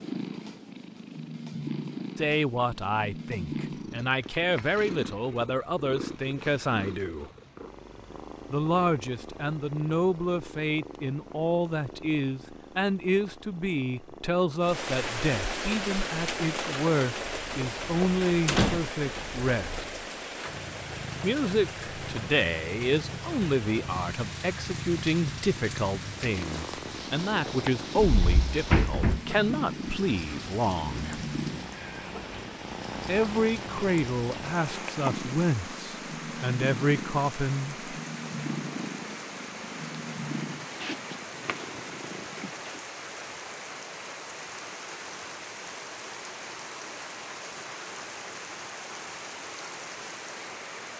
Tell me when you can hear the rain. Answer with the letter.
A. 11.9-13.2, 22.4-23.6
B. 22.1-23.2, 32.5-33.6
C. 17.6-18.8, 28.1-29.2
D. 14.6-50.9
D.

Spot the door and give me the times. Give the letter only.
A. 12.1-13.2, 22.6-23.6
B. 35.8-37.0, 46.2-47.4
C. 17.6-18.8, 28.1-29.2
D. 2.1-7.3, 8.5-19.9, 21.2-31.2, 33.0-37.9
C.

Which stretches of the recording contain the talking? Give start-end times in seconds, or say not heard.
2.1-7.3, 8.5-19.9, 21.2-31.2, 33.0-37.9.